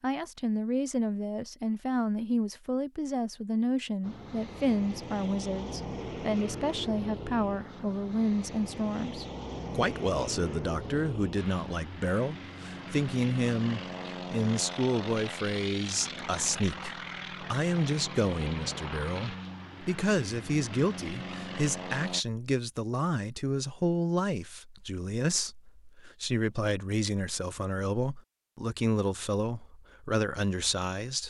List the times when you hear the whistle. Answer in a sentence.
The whistle can't be heard in this clip.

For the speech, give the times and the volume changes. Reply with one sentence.
You can hear the speech from 0.0 to 31.2 s, at a steady volume.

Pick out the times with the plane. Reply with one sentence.
The plane can be heard from 4.0 to 22.2 s.